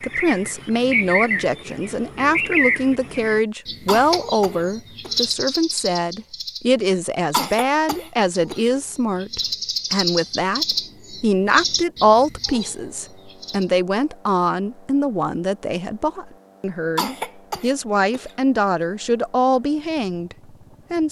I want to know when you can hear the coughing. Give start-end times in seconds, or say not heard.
3.9-5.2, 7.3-8.7, 16.9-18.3.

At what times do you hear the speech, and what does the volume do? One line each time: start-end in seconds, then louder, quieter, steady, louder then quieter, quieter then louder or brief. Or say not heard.
0.0-21.0 steady.